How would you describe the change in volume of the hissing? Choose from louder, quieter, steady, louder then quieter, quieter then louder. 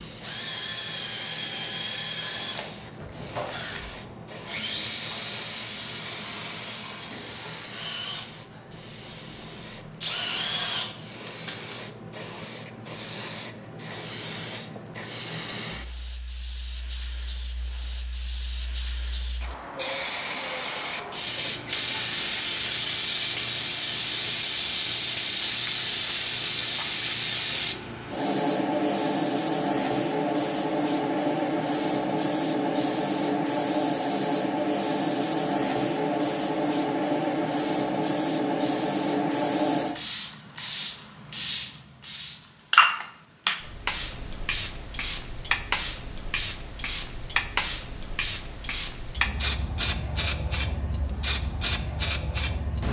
louder.